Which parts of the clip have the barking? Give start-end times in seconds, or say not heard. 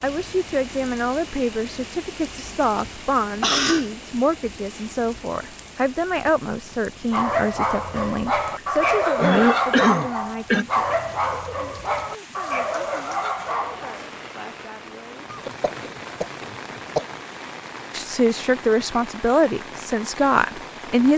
7.1-14.1.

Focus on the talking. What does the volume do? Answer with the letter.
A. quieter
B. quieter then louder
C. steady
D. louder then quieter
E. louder
B.